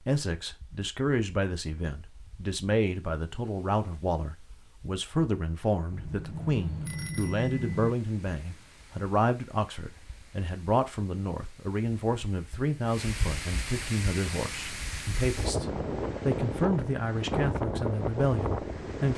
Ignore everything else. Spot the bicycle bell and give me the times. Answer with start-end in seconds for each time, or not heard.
5.9-8.0.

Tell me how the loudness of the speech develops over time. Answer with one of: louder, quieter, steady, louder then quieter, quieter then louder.
steady.